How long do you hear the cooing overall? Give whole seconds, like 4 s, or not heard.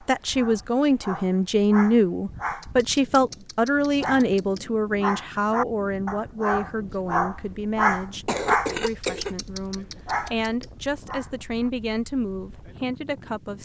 not heard.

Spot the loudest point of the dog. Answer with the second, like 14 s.
8 s.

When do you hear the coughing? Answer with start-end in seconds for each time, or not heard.
8.2-9.3.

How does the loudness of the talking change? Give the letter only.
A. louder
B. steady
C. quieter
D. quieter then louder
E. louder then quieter
C.